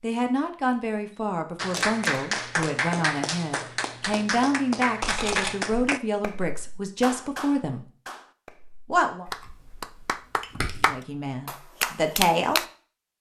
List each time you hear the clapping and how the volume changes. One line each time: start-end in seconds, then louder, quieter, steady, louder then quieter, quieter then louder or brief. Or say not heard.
1.6-12.7 quieter then louder.